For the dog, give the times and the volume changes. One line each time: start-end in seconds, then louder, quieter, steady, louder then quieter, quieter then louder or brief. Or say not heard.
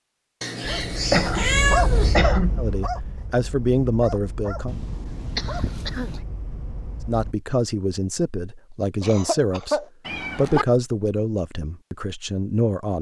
0.6-7.3 quieter.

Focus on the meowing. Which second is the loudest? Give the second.
2 s.